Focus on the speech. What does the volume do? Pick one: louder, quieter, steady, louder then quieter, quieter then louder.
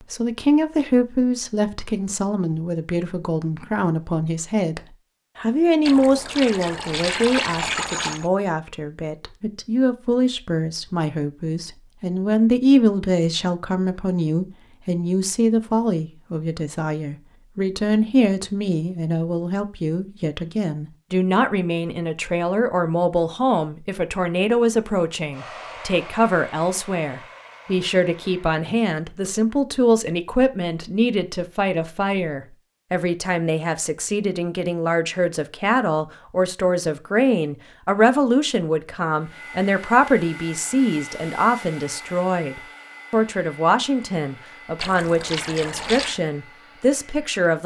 steady.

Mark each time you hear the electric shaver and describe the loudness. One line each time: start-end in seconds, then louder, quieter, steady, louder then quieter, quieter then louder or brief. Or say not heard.
not heard.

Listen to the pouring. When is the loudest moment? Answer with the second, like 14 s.
8 s.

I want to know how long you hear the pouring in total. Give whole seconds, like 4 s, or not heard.
4 s.